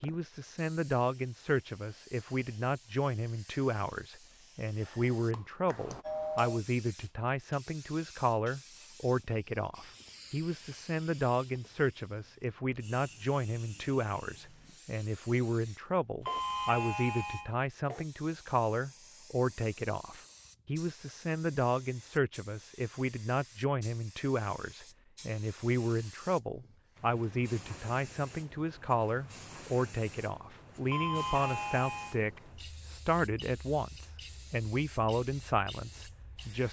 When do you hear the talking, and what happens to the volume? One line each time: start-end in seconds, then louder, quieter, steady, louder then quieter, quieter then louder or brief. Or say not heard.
0.0-36.6 steady.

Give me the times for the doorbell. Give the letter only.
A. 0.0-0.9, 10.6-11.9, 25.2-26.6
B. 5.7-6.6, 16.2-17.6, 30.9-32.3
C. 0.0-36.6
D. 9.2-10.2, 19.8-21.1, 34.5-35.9
B.